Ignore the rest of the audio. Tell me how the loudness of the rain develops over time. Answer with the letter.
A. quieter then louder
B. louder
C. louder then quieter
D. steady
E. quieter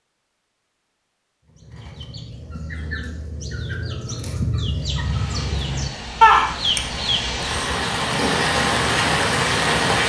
B.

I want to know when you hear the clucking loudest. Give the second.
6 s.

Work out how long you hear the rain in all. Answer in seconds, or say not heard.
5 s.